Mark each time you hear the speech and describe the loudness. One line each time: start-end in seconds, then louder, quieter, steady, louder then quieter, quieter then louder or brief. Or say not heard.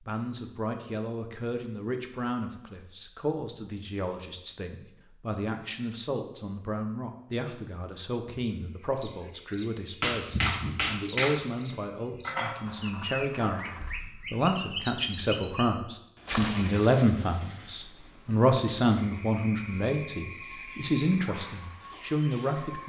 0.0-22.8 louder.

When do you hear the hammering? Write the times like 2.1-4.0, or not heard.
10.0-12.6.